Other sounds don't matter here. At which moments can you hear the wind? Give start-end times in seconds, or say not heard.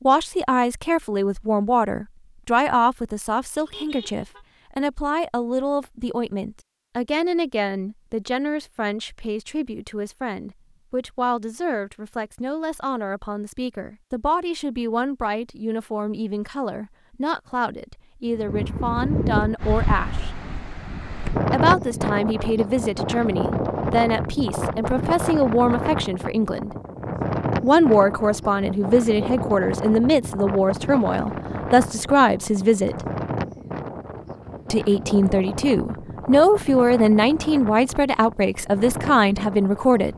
18.4-40.1.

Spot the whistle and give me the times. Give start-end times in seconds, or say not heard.
not heard.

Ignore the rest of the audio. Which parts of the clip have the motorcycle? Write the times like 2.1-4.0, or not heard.
not heard.